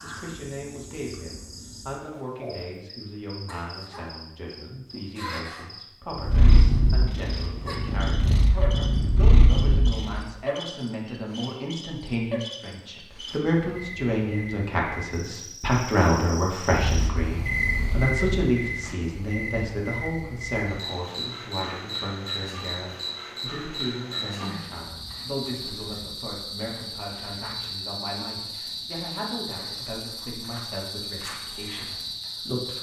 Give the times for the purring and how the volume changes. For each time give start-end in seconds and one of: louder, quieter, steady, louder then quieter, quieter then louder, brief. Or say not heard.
6.2-10.2 quieter then louder
16.7-18.4 brief.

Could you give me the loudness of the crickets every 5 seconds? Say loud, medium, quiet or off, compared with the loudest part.
medium, medium, medium, loud, loud, loud, loud.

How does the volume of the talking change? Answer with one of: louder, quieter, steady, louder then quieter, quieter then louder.
louder then quieter.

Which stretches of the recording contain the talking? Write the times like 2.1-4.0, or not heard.
0.0-32.7.